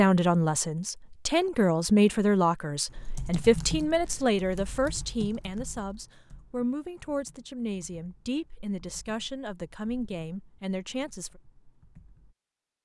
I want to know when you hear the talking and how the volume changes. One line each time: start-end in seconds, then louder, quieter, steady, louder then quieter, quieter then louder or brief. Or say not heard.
0.0-11.3 quieter.